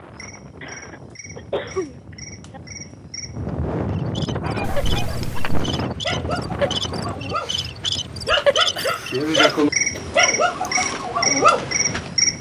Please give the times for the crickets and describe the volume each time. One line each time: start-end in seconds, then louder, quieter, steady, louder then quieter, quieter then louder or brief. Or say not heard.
0.0-12.3 louder.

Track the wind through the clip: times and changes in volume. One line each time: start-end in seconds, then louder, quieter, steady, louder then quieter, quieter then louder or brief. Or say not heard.
0.0-12.3 louder then quieter.